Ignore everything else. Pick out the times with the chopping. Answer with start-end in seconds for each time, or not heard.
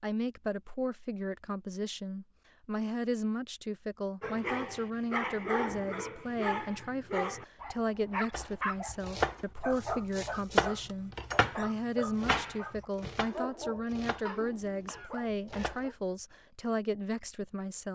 8.3-15.8.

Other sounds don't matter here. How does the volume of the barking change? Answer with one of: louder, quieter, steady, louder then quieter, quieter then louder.
quieter.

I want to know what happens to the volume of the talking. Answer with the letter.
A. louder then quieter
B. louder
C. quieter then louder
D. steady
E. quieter
D.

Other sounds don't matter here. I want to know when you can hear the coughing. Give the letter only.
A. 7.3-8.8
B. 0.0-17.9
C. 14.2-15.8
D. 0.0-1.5
C.